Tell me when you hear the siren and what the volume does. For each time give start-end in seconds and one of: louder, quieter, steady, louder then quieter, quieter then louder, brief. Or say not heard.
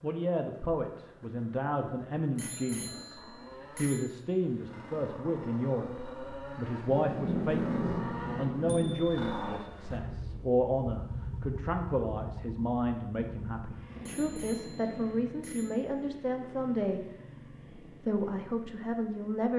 not heard.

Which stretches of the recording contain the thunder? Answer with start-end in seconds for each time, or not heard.
6.8-8.9.